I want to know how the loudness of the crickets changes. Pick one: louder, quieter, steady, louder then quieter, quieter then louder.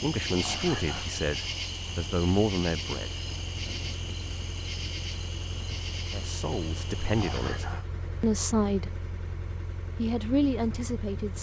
quieter.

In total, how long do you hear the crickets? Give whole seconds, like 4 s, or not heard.
8 s.